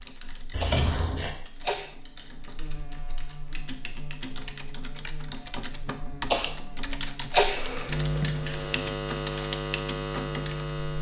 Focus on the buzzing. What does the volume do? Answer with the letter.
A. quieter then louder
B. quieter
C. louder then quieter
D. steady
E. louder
E.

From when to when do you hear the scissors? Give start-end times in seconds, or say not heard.
0.5-1.3, 7.5-8.8.